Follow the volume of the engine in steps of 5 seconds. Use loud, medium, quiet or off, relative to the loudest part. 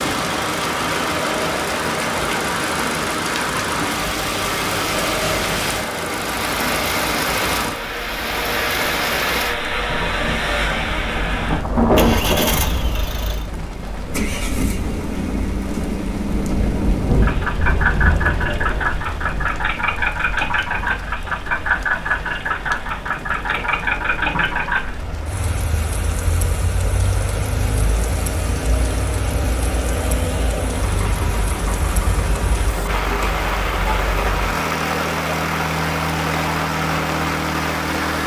loud, loud, loud, loud, loud, medium, medium, loud.